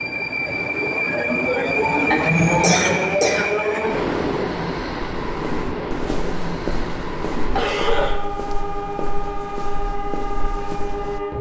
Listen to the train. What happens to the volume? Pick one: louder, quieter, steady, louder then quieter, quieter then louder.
quieter.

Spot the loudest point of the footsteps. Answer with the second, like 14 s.
7 s.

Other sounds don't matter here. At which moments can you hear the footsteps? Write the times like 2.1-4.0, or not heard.
5.2-11.2.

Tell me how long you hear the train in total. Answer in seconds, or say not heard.
11 s.